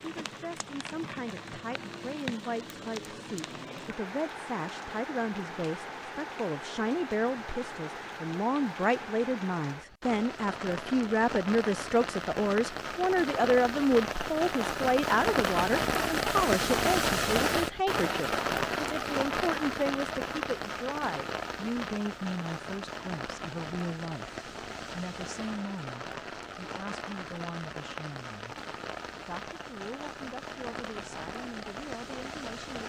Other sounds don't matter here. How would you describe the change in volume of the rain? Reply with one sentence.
The loudness of the rain goes up, then down.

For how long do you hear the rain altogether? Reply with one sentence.
The rain can be heard for 33 seconds in total.